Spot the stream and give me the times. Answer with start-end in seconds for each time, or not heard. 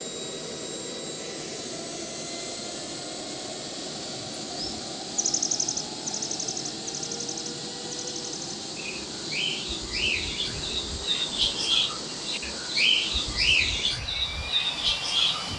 not heard.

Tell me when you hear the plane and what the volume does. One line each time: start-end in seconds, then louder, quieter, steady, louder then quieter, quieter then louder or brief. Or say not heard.
0.0-15.5 steady.